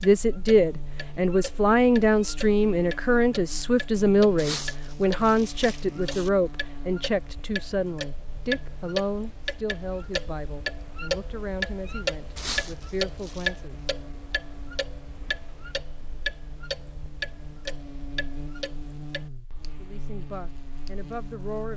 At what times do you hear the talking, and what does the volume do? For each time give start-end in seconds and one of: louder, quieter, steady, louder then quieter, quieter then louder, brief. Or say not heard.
0.0-13.8 quieter
19.8-21.7 brief.